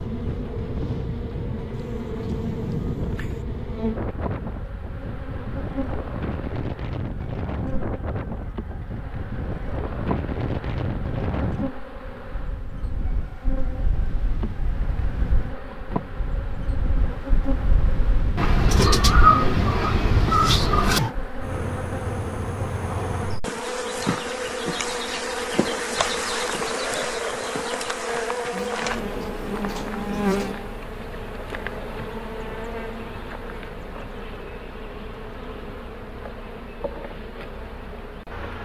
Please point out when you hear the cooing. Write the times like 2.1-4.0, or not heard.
1.8-3.5, 18.4-21.1, 28.5-30.6.